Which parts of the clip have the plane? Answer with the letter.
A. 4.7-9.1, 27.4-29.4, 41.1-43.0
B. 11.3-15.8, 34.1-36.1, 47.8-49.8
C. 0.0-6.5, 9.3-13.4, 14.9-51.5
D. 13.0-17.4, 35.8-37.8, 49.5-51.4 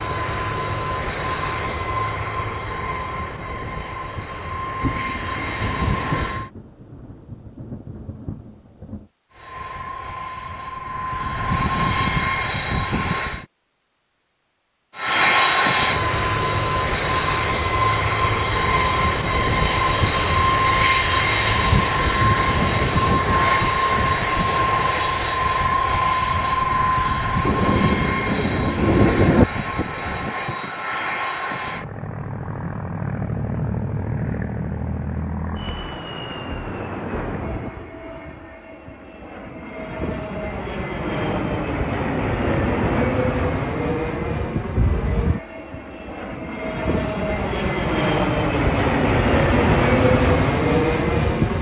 C.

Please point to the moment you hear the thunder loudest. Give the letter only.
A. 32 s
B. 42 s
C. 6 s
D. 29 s
D.